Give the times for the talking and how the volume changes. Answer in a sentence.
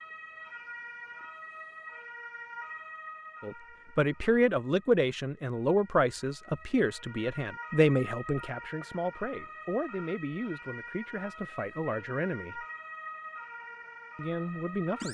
You can hear the talking from 3.4 to 12.7 s, getting quieter; and briefly from 14.2 to 15.0 s.